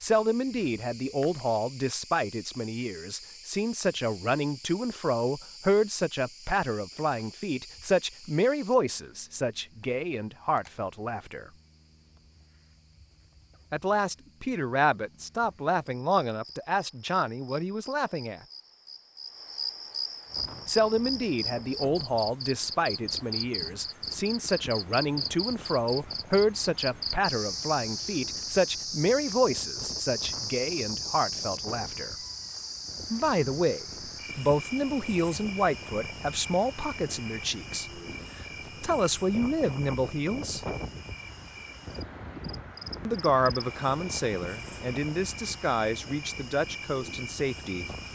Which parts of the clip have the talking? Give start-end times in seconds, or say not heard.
0.0-11.5, 13.7-18.4, 20.6-32.1, 33.1-37.9, 38.8-40.6, 43.0-47.9.